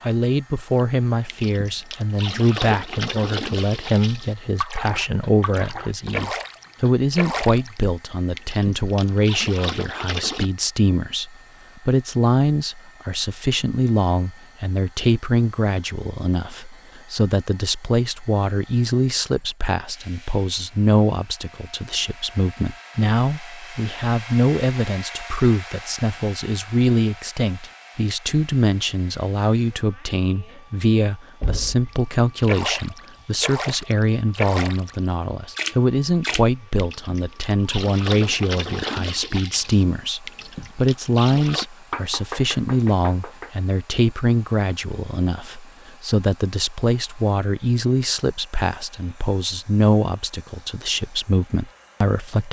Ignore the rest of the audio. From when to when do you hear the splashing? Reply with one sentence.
The splashing can be heard from 0.8 to 10.5 s and from 31.9 to 41.6 s.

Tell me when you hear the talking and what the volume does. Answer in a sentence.
The talking can be heard from 0.0 to 52.4 s, at a steady volume.